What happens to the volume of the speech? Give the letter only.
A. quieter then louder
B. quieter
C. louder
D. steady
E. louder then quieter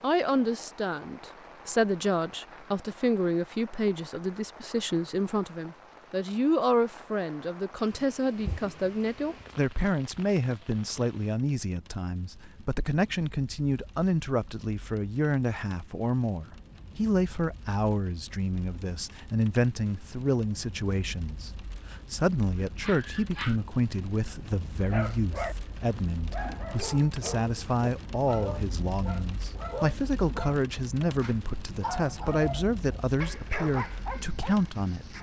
D.